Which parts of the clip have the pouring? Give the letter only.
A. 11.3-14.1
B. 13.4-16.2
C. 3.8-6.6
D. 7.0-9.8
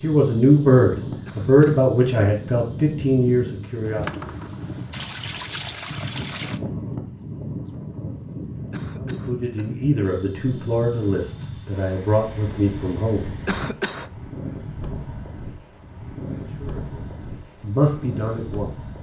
C.